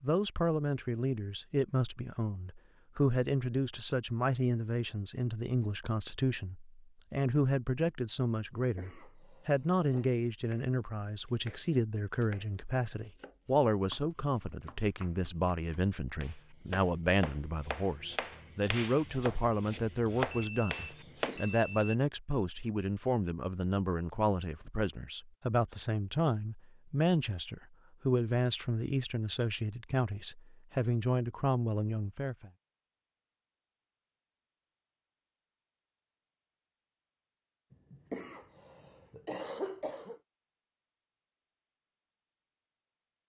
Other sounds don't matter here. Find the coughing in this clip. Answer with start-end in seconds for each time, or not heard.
8.6-10.1, 20.9-21.6, 37.7-40.2.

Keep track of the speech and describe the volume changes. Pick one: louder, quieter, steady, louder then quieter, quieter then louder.
steady.